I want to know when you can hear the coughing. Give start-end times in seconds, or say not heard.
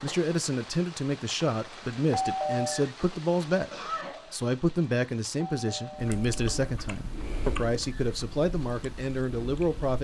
3.7-4.3.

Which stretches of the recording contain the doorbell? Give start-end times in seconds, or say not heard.
2.1-2.9, 5.5-6.5.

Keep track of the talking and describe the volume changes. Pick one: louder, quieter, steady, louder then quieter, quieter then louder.
steady.